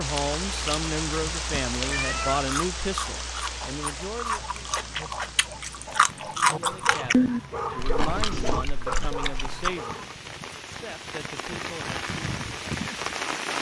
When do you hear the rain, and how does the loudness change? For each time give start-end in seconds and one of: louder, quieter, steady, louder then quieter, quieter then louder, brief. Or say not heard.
0.0-13.5 quieter then louder.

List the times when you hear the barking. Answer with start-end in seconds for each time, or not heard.
3.6-10.2.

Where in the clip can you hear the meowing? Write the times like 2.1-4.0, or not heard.
1.8-2.5, 8.1-8.7.